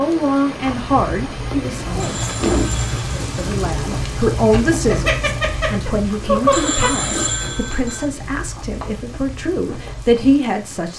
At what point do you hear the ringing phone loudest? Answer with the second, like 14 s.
7 s.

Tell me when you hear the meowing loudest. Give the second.
6 s.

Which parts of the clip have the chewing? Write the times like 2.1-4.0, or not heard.
0.6-10.4.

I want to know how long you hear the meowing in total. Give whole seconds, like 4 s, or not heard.
2 s.